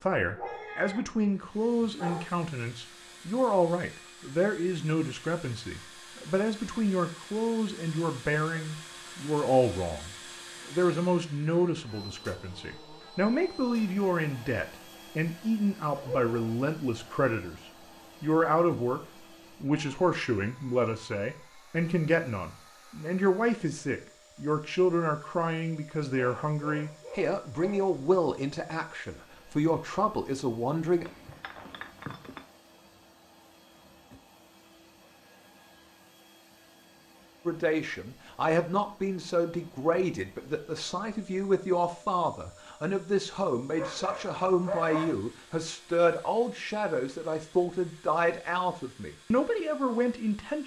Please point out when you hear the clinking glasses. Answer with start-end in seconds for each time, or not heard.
31.0-32.5.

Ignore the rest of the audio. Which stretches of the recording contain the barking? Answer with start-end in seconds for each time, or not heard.
0.2-1.1, 1.8-2.2, 15.9-16.4, 26.1-28.0, 43.8-45.1.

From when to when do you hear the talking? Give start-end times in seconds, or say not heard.
0.0-17.6, 18.2-19.0, 19.6-31.1, 37.5-50.6.